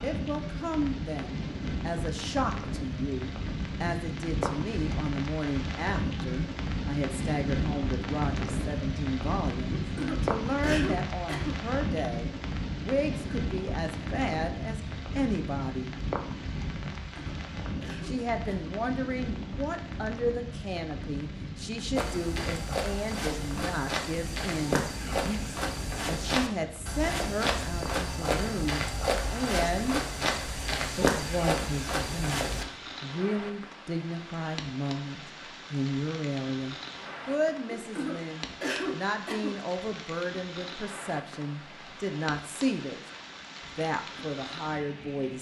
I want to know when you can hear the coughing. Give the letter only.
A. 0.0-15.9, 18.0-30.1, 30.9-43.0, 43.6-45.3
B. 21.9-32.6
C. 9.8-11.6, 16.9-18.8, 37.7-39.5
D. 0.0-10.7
C.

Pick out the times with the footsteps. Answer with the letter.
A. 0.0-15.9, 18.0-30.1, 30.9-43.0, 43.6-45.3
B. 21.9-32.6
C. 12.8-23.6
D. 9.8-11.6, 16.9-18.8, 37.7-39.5
B.